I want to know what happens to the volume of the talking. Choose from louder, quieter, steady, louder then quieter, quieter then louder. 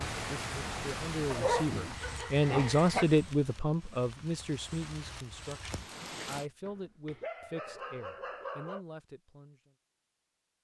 louder then quieter.